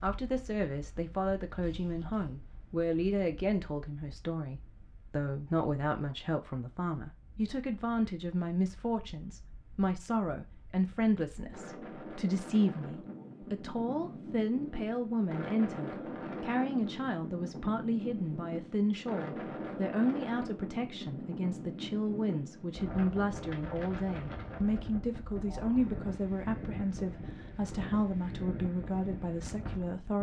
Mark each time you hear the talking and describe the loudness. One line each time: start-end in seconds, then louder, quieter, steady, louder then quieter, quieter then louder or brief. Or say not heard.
0.0-30.1 steady.